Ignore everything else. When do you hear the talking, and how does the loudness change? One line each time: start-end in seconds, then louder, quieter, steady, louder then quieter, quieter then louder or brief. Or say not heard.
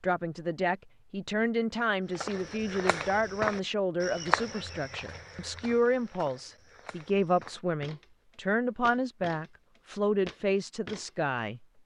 0.0-11.7 steady.